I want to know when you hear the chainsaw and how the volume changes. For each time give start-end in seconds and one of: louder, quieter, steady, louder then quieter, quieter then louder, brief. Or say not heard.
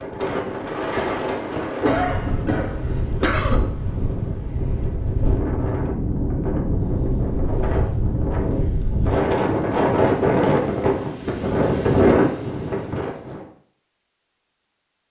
not heard.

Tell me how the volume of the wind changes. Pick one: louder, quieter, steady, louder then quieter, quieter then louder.
louder.